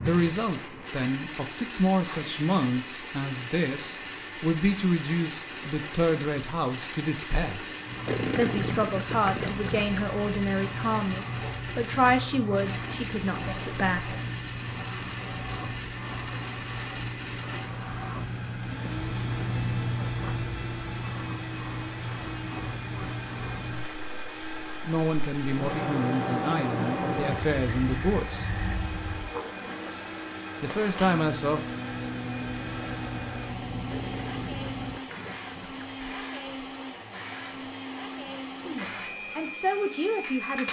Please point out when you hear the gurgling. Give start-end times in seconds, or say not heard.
8.1-10.0, 33.9-35.9.